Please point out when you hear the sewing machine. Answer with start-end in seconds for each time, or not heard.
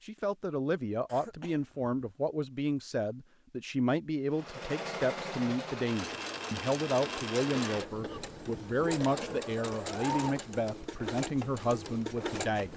4.3-12.7.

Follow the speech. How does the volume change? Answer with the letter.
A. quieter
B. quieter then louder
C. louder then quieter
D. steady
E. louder
D.